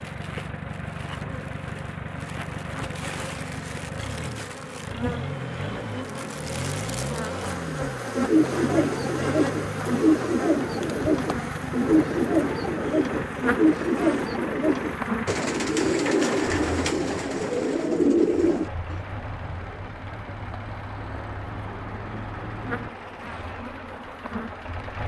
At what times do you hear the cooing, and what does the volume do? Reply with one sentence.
The cooing can be heard from 7.7 to 19.0 s, at a steady volume.